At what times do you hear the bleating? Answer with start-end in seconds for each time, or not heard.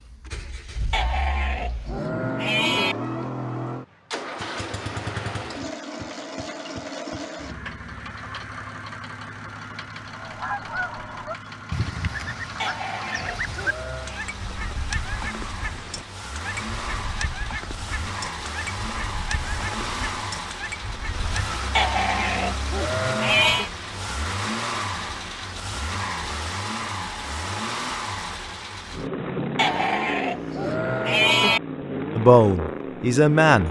0.9-3.0, 12.6-14.2, 21.8-23.7, 29.6-31.6.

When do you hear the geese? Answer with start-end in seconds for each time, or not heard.
10.1-21.6.